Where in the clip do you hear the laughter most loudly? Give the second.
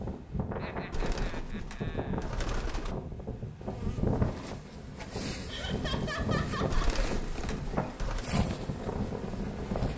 6 s.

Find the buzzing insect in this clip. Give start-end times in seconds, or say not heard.
3.6-9.9.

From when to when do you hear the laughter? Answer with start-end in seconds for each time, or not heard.
0.6-2.3, 5.5-6.9.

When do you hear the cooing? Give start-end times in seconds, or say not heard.
0.9-3.0, 6.7-8.2.